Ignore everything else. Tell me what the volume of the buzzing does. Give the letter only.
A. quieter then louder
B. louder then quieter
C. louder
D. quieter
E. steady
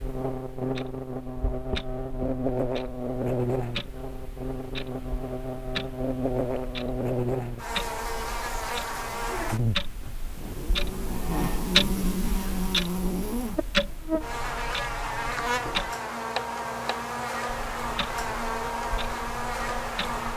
E.